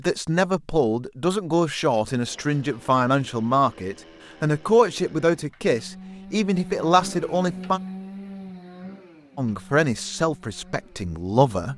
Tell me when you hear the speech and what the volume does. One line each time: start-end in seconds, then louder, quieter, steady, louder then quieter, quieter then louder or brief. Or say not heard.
0.0-7.8 steady
9.3-11.7 brief.